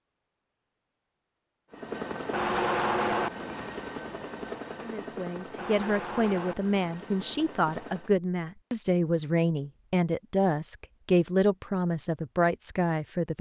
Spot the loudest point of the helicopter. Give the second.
3 s.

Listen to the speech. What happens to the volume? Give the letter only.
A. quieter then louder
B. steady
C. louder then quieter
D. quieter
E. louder
B.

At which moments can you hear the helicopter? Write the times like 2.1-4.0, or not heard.
1.7-8.2.